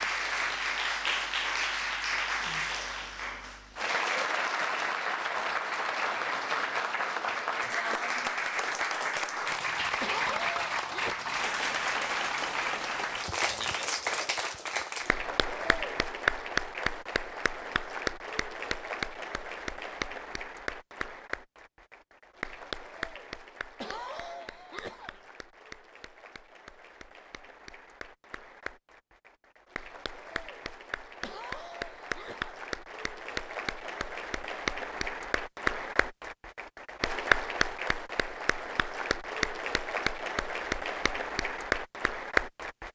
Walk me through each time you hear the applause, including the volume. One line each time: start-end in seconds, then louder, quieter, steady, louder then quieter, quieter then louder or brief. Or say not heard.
0.0-42.8 quieter then louder.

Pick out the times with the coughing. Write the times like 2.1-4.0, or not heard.
10.0-11.2, 23.8-25.2, 31.2-32.6.